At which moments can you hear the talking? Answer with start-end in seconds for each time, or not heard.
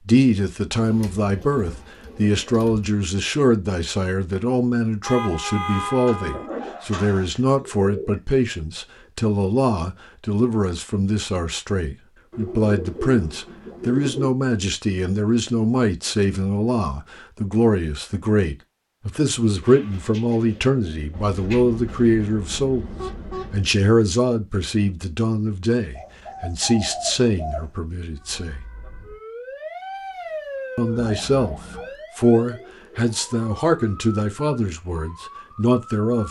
0.0-22.9, 23.5-28.6, 30.8-36.2.